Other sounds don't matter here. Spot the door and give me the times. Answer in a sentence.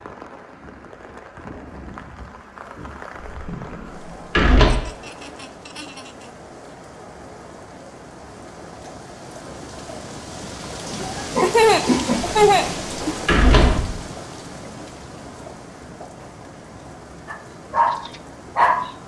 The door can be heard from 3.2 to 4.7 s and from 12.3 to 13.9 s.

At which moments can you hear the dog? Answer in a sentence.
The dog can be heard from 17.2 to 18.9 s.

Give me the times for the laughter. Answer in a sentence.
You can hear the laughter from 4.7 to 6.3 s and from 10.8 to 13.2 s.